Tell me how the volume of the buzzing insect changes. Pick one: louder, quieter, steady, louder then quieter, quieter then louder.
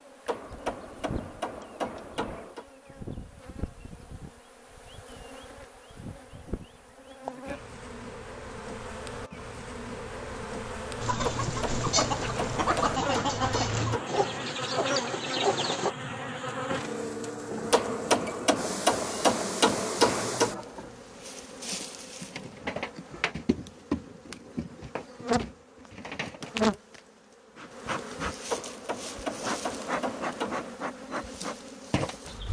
louder.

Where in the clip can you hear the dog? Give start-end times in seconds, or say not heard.
not heard.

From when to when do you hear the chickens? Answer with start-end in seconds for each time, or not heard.
11.0-15.9.